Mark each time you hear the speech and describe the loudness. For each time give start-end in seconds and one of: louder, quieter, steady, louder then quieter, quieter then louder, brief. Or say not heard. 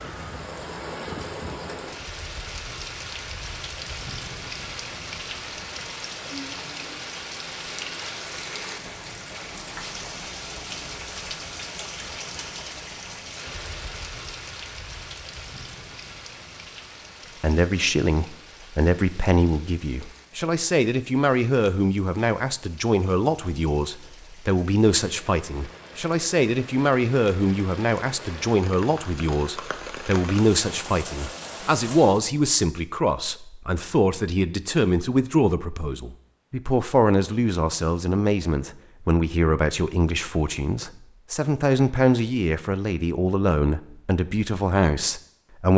17.4-45.7 steady.